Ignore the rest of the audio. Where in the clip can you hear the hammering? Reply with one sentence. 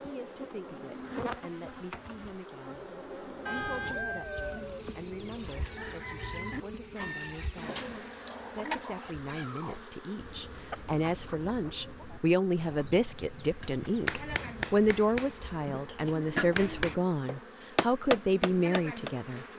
You can hear the hammering from 13.6 to 19.1 s.